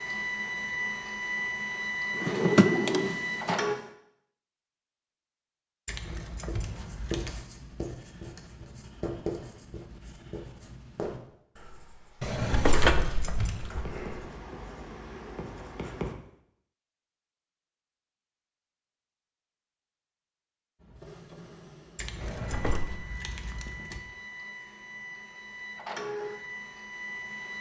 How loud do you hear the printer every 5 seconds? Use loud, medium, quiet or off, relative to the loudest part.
loud, off, off, off, quiet, medium.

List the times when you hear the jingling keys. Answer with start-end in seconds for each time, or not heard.
5.8-7.4, 12.7-13.8, 21.9-24.0.